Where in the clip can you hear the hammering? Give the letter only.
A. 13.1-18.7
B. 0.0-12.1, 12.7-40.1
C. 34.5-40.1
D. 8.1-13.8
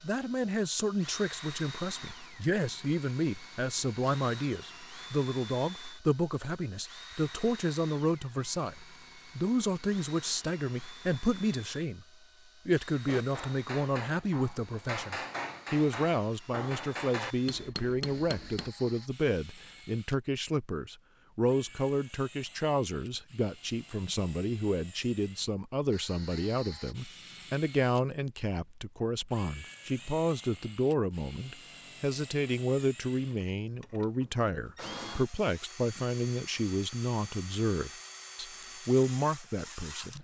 A.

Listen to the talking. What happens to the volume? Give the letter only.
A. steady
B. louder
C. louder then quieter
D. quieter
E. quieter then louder
A.